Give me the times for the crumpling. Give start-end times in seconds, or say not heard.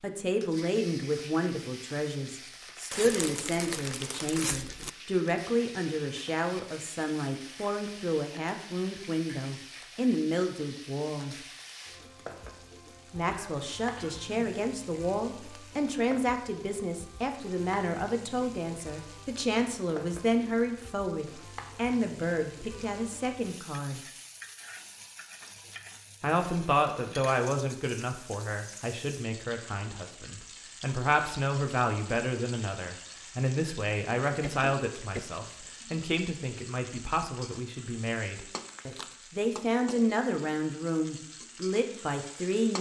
2.9-4.9, 38.6-39.2.